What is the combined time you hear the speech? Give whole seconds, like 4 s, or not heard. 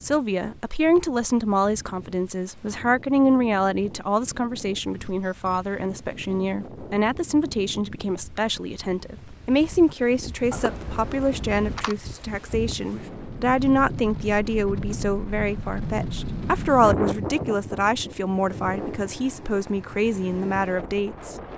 21 s.